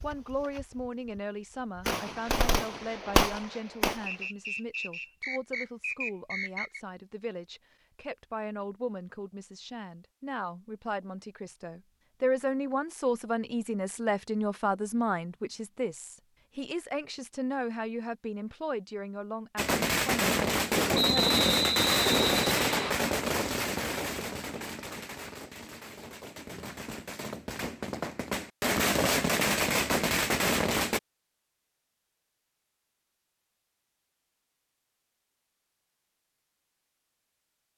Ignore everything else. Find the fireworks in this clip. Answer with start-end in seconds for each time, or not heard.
0.0-4.2, 19.6-31.0.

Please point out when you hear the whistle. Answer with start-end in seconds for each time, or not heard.
4.0-6.8, 20.9-22.9.